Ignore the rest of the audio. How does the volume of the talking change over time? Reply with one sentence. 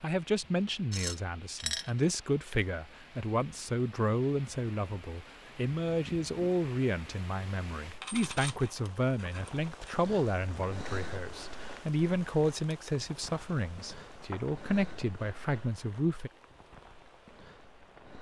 The loudness of the talking stays about the same.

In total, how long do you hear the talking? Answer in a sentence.
You can hear the talking for 16 seconds altogether.